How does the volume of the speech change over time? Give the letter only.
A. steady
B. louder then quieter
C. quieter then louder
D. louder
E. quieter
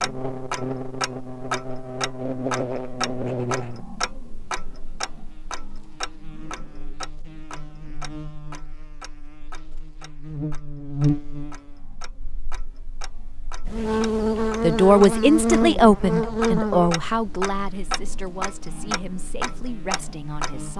E.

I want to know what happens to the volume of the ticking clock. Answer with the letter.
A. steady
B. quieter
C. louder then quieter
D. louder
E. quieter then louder
E.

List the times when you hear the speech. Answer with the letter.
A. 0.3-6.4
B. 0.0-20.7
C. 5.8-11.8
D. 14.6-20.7
D.